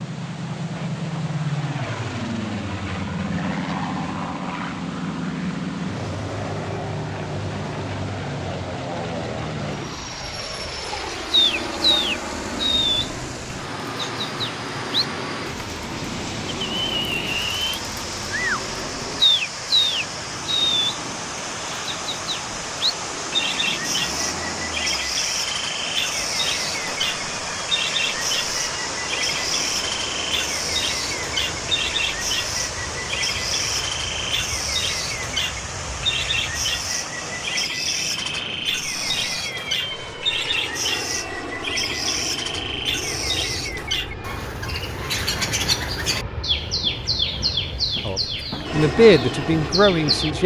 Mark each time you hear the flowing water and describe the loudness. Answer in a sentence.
The flowing water can be heard from 0.0 to 37.7 s, getting louder.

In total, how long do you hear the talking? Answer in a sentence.
The talking can be heard for 2 seconds in total.